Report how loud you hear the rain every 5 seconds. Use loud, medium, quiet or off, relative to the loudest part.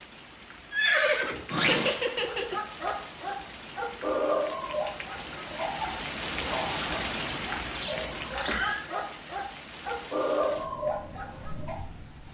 medium, loud, medium.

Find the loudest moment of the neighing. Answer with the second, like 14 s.
1 s.